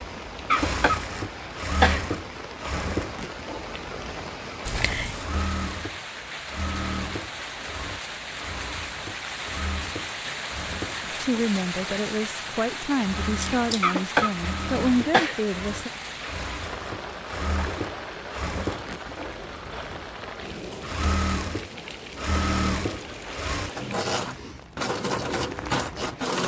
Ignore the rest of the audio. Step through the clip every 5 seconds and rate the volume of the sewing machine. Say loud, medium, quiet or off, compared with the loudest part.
medium, medium, medium, medium, loud, loud.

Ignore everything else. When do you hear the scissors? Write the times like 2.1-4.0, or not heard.
4.7-5.3, 13.4-14.0.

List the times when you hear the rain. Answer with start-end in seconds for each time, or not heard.
0.0-26.4.